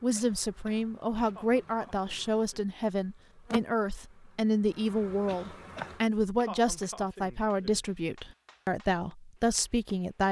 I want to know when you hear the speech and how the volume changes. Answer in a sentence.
The speech can be heard from 0.0 to 10.2 s, at a steady volume.